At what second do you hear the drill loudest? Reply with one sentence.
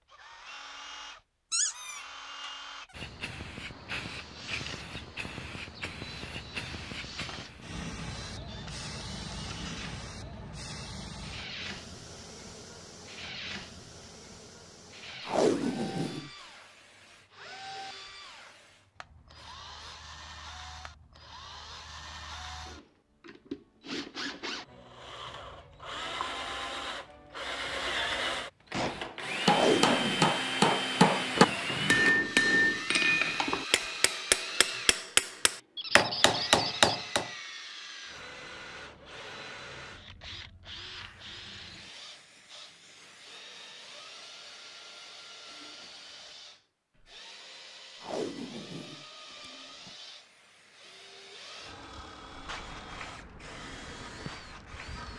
The volume of the drill peaks at 30 seconds.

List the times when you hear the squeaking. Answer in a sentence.
The squeaking can be heard from 1.5 to 2.5 s and from 35.8 to 37.1 s.